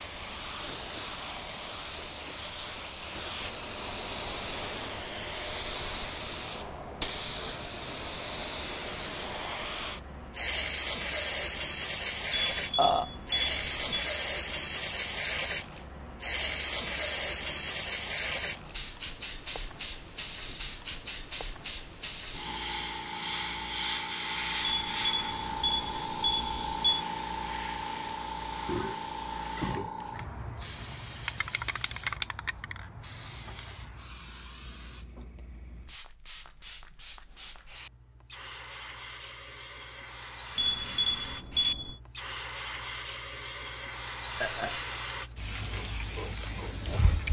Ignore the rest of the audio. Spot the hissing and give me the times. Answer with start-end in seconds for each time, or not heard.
0.0-47.2.